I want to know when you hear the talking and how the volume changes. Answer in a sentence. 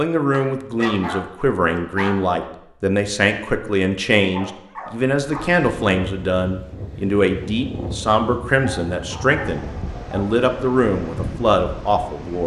The talking can be heard from 0.0 to 12.4 s, at a steady volume.